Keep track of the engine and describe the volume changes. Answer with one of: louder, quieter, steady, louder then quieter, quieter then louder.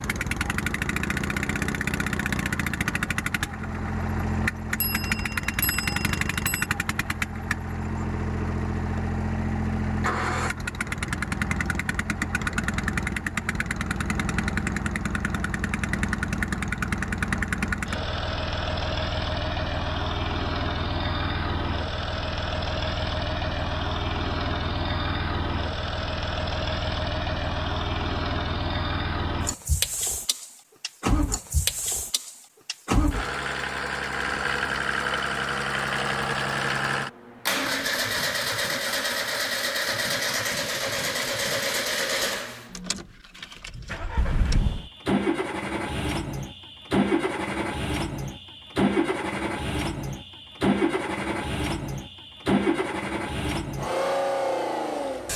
steady.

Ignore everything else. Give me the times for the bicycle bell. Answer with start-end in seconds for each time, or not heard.
4.8-6.7, 44.1-44.9.